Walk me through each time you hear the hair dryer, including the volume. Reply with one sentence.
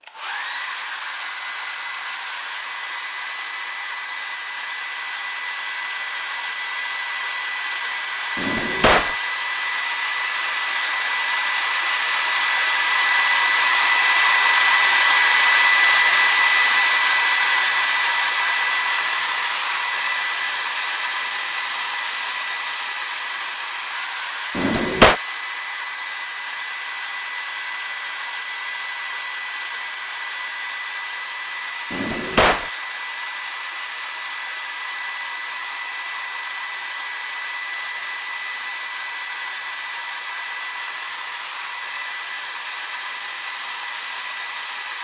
You can hear the hair dryer from 0.0 to 44.9 s, getting louder then quieter.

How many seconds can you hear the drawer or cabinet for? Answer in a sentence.
You can hear the drawer or cabinet for 2 seconds altogether.